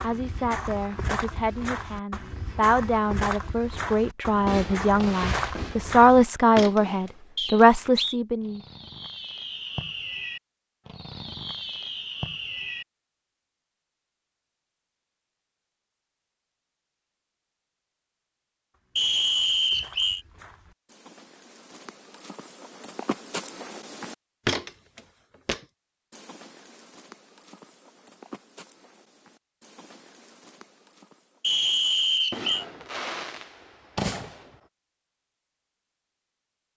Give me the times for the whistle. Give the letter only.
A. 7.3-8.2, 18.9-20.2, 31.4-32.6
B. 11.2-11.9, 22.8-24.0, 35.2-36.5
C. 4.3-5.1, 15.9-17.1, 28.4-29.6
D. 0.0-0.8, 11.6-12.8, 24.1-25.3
A.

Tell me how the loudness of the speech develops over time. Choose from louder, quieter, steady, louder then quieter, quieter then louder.
louder.